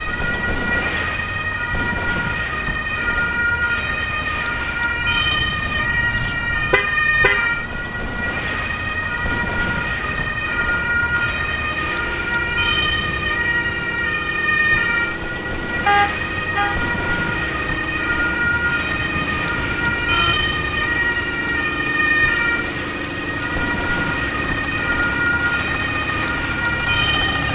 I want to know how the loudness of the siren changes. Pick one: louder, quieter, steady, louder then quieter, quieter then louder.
steady.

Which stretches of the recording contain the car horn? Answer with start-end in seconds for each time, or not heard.
5.6-7.5, 15.8-16.8, 18.4-20.4.